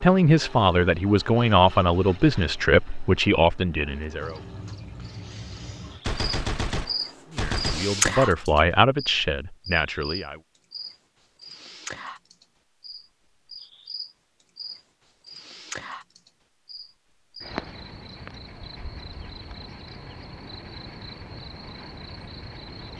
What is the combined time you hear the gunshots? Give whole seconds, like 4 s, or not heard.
2 s.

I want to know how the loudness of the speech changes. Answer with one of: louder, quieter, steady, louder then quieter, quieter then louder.
quieter.